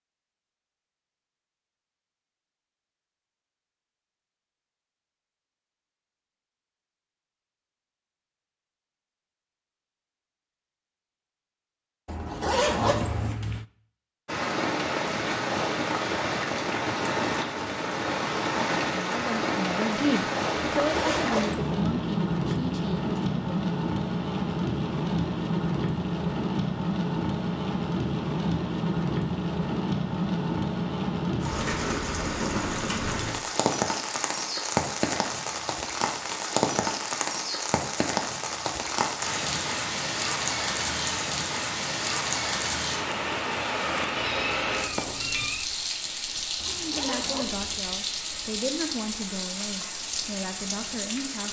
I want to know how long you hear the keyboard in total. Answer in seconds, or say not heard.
not heard.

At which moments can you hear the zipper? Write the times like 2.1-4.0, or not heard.
12.1-13.3, 20.8-21.6, 46.5-47.8.